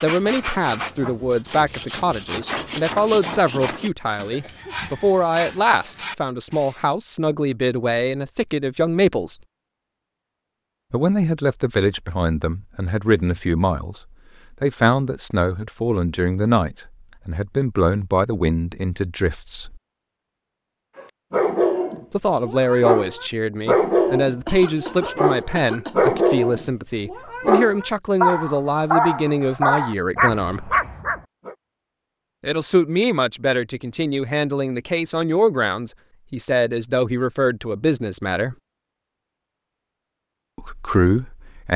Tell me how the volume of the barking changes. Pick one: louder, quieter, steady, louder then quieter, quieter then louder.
steady.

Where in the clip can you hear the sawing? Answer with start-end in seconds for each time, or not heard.
0.0-6.8.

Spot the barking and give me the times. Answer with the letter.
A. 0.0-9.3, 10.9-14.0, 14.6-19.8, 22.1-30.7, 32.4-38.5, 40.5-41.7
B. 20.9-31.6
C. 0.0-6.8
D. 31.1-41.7
B.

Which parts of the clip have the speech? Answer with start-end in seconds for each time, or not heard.
0.0-9.3, 10.9-14.0, 14.6-19.8, 22.1-30.7, 32.4-38.5, 40.5-41.7.